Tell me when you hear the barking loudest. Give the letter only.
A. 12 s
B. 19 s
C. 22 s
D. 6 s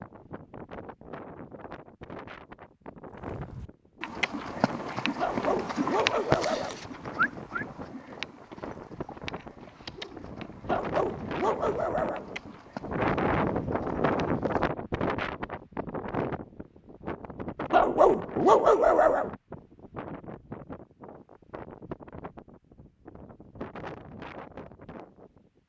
B.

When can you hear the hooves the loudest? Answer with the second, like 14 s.
6 s.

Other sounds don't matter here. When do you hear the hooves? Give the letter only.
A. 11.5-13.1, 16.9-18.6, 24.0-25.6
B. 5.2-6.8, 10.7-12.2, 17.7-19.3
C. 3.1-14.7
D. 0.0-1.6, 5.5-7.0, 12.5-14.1
C.